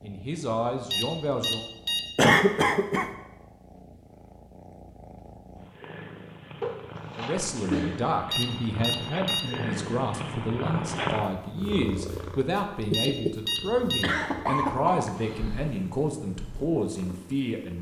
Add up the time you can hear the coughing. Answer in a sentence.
The coughing can be heard for 4 seconds in total.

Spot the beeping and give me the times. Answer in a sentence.
The beeping can be heard from 0.9 to 2.2 s, from 8.3 to 9.7 s and from 12.9 to 14.2 s.